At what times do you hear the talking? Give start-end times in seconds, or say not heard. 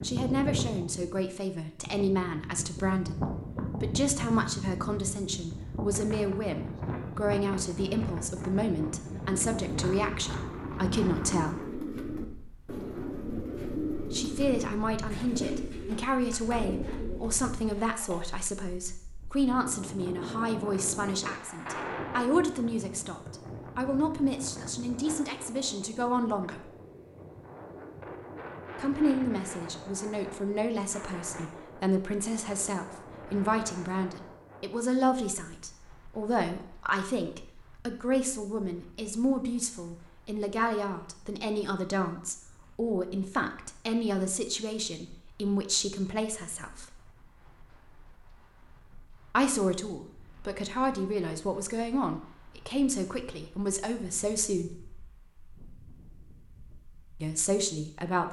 0.0-11.6, 14.1-26.7, 28.8-46.9, 49.3-54.7, 57.2-58.2.